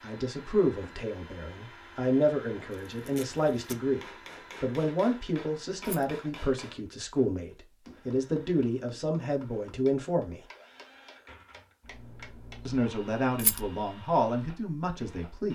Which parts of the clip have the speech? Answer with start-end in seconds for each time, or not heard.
0.0-4.0, 4.6-10.4, 12.7-15.4.